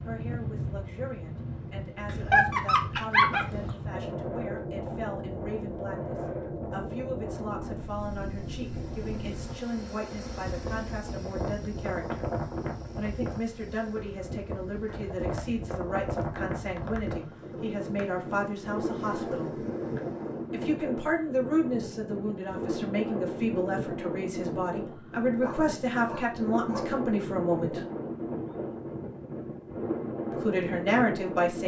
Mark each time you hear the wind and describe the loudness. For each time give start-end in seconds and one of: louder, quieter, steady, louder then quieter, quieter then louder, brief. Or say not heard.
0.0-31.6 steady.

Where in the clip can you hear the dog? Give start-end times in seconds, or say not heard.
2.0-3.7, 25.4-26.9.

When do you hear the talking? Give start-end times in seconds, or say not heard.
0.1-12.3, 12.9-19.6, 20.5-27.9, 30.3-31.6.